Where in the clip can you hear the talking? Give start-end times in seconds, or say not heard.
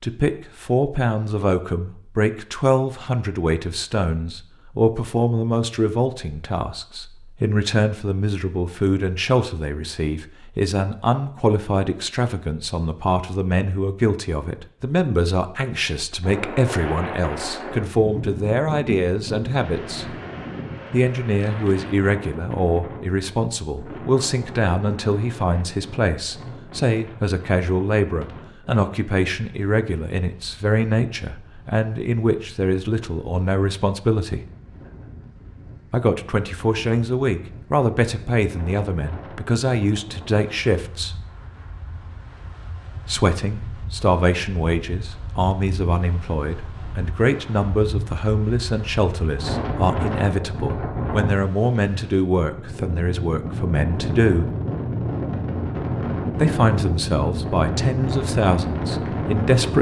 0.0-20.1, 20.9-34.5, 35.9-41.2, 43.0-54.5, 56.4-59.7.